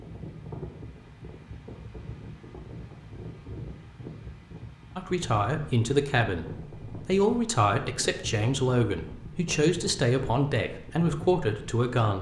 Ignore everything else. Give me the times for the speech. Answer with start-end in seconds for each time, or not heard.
5.0-12.1.